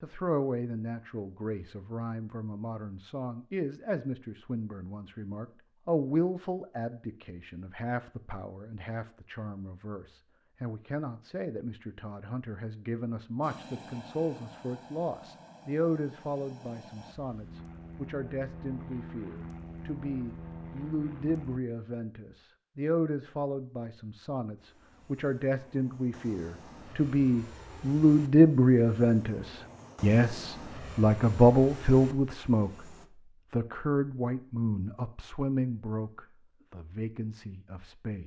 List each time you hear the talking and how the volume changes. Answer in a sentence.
The talking can be heard from 0.0 to 38.2 s, getting louder.